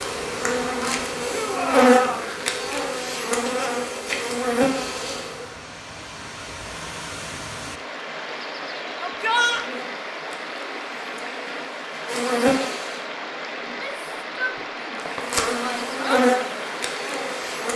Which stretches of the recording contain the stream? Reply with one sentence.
You can hear the stream from 0.0 to 17.7 s.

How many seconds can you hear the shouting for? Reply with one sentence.
The shouting can be heard for 4 seconds in total.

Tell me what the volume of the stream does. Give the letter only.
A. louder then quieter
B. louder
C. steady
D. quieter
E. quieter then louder
B.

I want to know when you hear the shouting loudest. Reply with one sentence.
The volume of the shouting peaks at 9 seconds.